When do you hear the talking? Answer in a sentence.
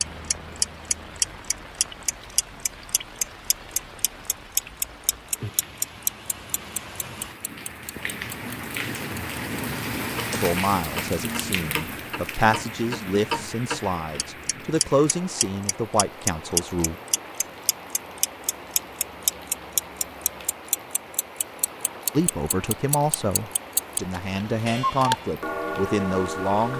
You can hear the talking from 10.3 to 16.9 s and from 22.1 to 26.7 s.